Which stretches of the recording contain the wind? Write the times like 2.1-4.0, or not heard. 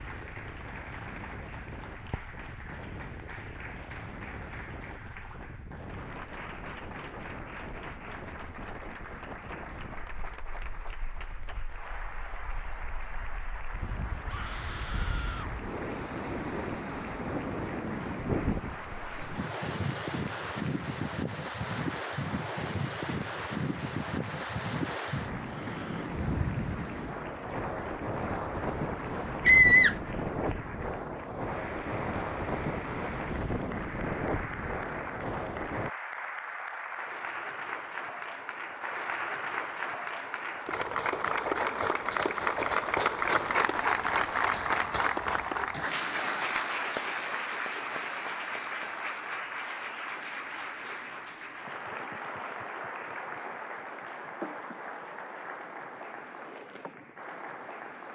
0.0-35.9.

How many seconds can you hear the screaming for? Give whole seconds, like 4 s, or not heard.
2 s.